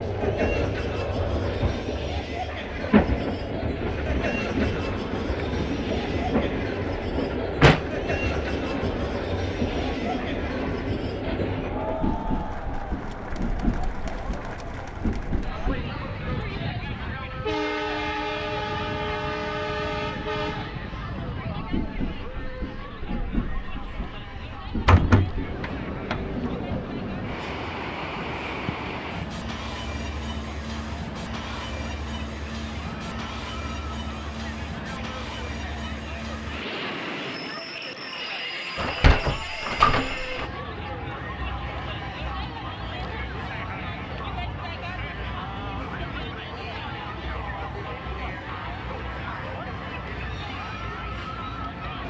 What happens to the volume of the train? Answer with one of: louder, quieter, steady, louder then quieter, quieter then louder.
quieter.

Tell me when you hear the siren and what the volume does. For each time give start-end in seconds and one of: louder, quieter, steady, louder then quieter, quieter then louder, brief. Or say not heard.
not heard.